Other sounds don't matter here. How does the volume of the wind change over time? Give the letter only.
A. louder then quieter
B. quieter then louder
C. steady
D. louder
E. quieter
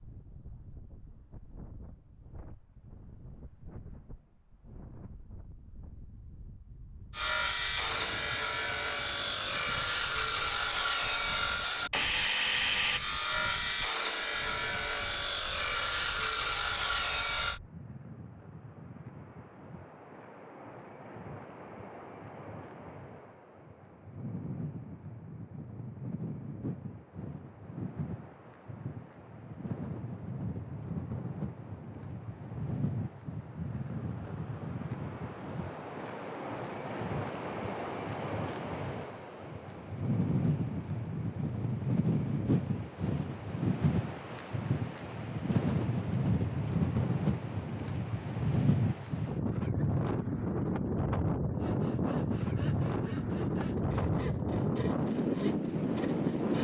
D.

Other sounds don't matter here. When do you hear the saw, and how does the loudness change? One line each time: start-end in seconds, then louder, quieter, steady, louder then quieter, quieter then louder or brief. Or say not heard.
7.1-17.6 steady
51.5-56.5 louder.